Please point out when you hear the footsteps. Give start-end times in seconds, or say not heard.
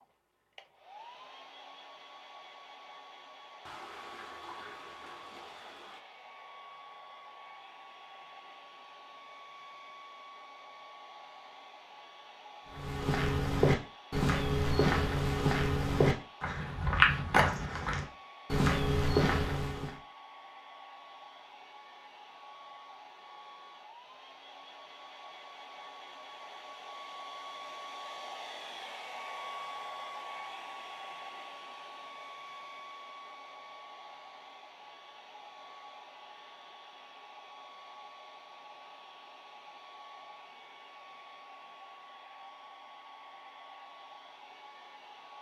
12.8-19.9.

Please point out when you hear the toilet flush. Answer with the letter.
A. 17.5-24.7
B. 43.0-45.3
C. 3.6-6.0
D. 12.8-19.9
C.